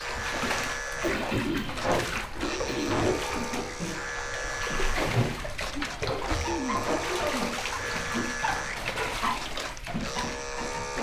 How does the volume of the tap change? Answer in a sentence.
The loudness of the tap stays about the same.